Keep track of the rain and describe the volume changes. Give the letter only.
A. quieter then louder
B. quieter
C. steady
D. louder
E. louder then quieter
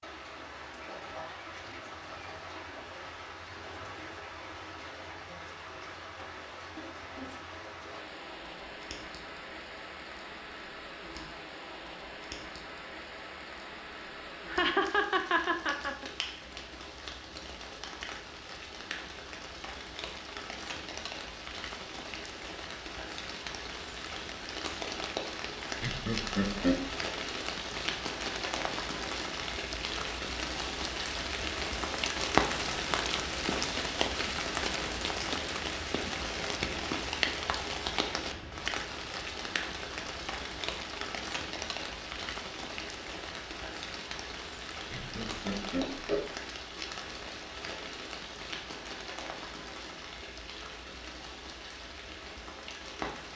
E.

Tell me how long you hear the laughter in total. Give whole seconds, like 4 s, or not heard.
4 s.